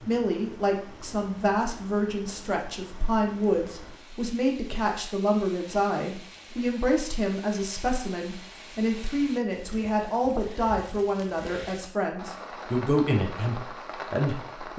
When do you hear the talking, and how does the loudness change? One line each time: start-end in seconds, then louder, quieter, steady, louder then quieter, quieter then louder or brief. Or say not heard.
0.1-14.7 steady.